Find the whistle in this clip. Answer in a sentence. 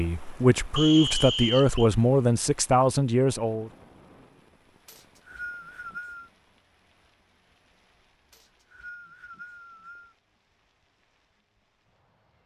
You can hear the whistle from 0.8 to 1.9 s, from 4.8 to 6.3 s and from 8.3 to 10.2 s.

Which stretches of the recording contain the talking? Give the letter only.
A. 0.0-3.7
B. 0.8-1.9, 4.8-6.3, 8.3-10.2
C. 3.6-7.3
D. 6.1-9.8
A.